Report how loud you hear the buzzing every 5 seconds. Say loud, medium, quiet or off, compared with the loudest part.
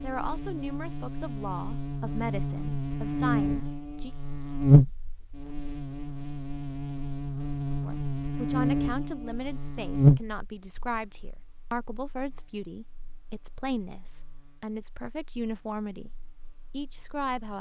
loud, medium, loud, quiet.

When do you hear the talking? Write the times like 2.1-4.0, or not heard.
0.0-4.2, 7.8-16.1, 16.7-17.5.